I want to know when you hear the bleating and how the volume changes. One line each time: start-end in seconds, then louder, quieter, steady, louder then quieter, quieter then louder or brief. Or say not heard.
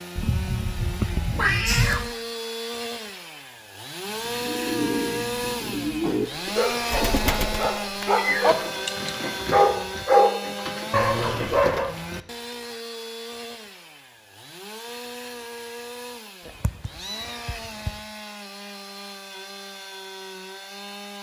not heard.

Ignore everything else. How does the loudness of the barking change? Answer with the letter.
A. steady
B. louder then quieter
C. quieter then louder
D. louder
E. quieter
B.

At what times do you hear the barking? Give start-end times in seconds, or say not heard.
5.8-11.9.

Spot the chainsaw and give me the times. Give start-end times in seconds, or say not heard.
0.0-21.1.